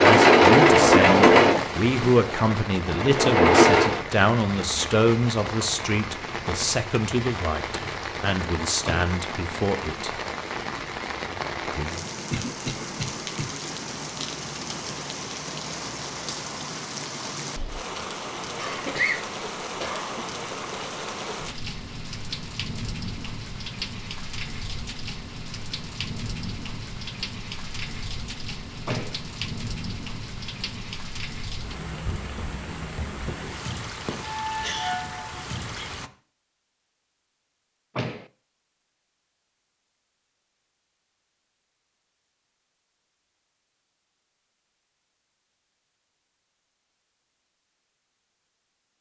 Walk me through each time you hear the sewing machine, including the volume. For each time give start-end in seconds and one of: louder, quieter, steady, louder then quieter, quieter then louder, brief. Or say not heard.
0.0-4.0 quieter then louder.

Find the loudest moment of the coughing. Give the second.
19 s.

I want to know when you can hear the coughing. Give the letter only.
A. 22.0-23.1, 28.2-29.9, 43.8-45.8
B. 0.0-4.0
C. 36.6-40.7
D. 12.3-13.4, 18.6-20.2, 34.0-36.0
D.